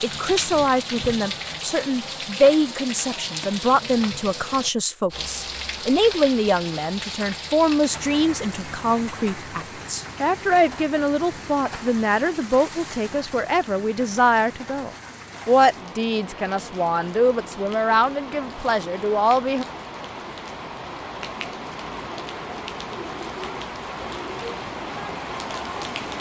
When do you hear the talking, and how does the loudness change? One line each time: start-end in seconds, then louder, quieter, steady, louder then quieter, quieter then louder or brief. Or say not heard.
0.0-19.6 steady.